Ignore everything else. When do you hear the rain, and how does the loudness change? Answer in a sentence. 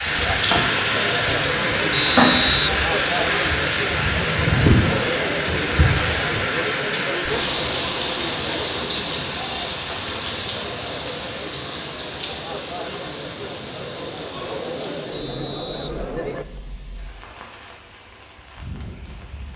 You can hear the rain from 0.0 to 19.5 s, getting quieter.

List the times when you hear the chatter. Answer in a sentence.
You can hear the chatter from 0.0 to 16.4 s.